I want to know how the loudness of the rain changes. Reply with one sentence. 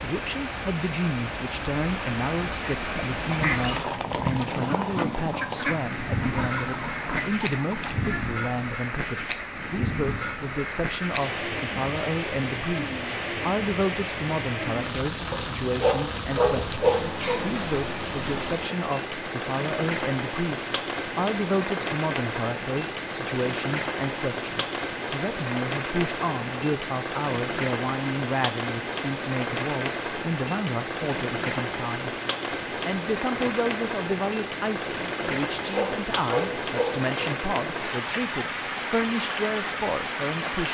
The loudness of the rain stays about the same.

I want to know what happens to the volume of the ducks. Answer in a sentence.
The volume of the ducks stays about the same.